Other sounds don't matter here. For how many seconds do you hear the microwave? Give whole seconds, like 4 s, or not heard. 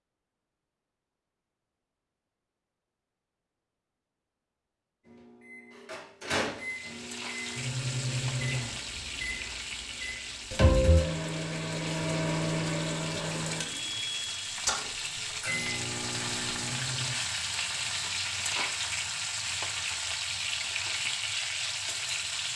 12 s.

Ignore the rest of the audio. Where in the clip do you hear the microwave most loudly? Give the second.
11 s.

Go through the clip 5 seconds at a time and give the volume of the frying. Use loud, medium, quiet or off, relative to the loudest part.
off, medium, medium, loud, loud.